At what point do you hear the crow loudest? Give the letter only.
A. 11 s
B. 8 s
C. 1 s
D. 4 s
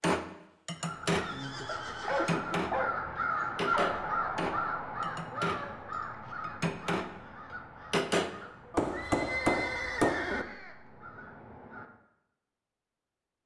D.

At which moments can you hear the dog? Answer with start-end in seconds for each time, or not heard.
1.6-4.0.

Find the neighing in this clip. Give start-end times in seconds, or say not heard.
1.1-2.6, 8.8-10.4.